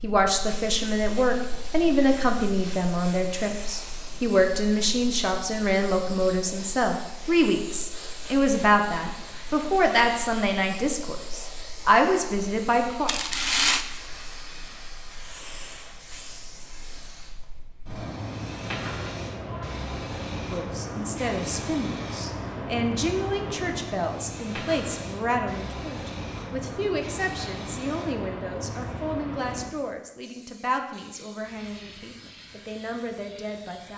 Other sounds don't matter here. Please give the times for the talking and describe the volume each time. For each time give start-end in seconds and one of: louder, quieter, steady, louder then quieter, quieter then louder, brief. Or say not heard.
0.0-13.1 steady
20.5-33.9 quieter.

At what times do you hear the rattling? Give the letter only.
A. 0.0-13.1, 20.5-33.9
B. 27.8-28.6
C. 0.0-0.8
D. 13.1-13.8
D.